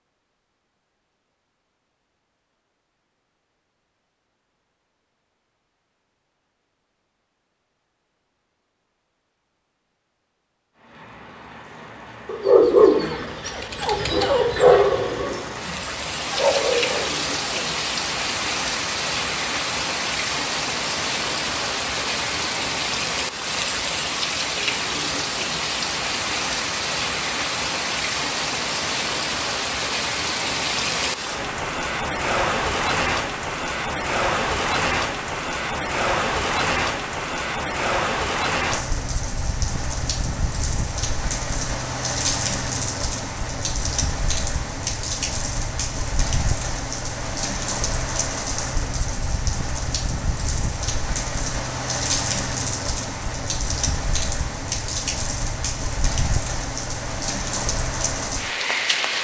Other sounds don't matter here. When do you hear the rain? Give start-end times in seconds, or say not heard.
10.8-59.1.